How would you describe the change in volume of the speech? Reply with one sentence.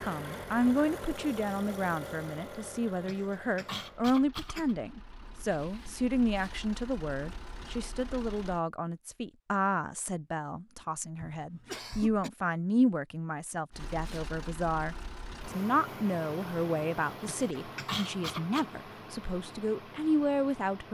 The loudness of the speech stays about the same.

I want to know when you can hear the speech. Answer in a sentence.
The speech can be heard from 0.0 to 20.8 s.